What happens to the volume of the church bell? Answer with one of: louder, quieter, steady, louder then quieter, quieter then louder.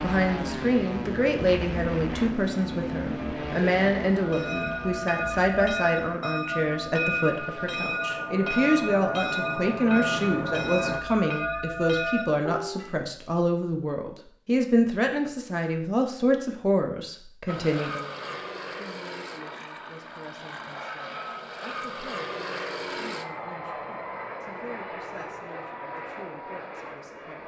steady.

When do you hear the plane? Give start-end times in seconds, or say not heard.
0.0-11.0, 17.4-27.4.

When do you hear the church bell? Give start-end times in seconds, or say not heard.
4.2-12.9.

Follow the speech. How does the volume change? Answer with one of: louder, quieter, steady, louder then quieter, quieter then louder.
quieter.